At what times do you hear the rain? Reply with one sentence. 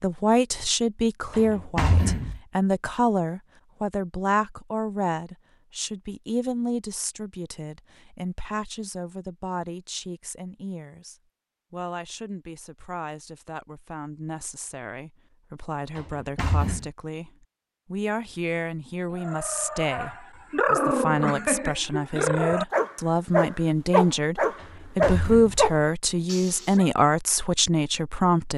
You can't hear the rain here.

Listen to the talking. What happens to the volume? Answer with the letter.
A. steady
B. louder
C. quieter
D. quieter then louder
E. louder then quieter
D.